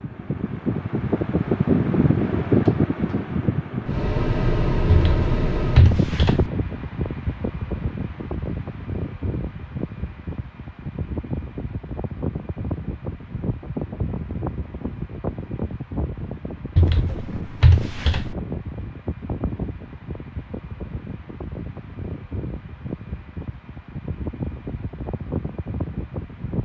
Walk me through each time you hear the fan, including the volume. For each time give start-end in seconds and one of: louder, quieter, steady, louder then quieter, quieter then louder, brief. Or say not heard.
0.0-26.5 quieter.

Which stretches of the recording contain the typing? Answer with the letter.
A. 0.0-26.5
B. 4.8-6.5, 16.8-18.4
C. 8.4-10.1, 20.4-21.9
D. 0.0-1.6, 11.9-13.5
B.